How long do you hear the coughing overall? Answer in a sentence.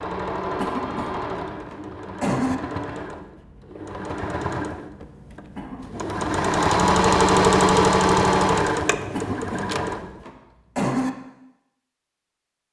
You can hear the coughing for 5 seconds altogether.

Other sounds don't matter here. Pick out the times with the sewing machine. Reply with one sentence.
The sewing machine can be heard from 0.0 to 10.2 s.